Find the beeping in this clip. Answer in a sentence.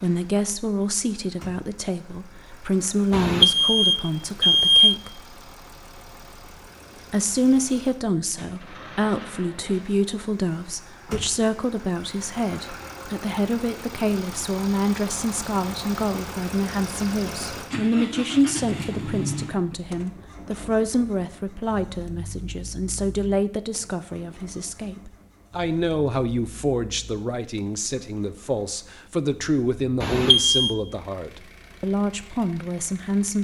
You can hear the beeping from 3.1 to 5.0 s and from 30.0 to 30.8 s.